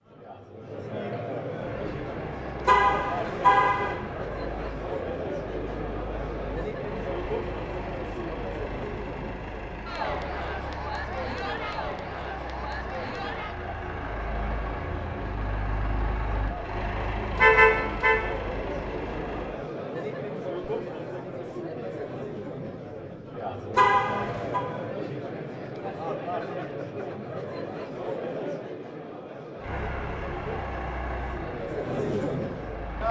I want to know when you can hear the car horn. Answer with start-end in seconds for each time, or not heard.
2.6-4.0, 17.3-18.1, 23.8-24.6.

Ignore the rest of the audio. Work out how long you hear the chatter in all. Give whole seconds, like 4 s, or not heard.
33 s.